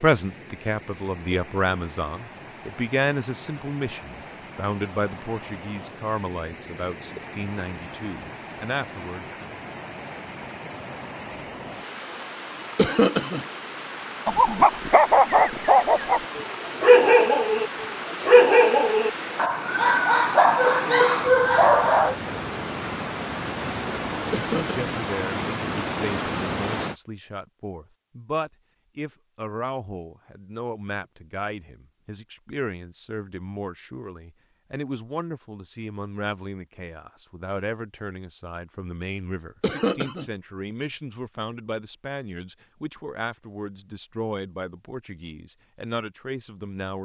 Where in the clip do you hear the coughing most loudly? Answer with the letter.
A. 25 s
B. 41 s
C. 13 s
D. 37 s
C.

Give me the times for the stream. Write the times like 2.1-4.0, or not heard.
0.0-26.9.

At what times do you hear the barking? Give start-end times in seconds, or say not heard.
14.2-22.1.